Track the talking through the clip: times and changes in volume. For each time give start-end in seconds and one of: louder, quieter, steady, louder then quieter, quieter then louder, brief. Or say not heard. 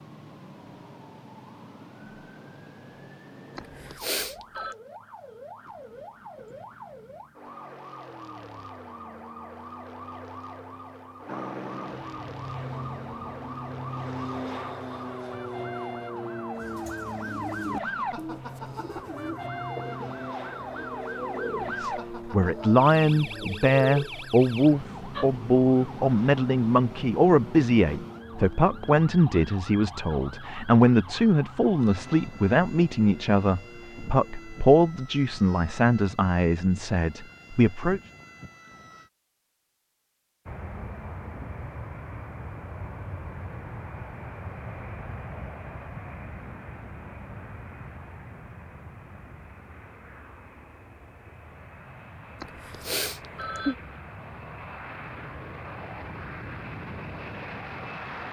21.6-38.0 steady.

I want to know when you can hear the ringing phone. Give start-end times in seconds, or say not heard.
3.5-4.8, 52.4-53.8.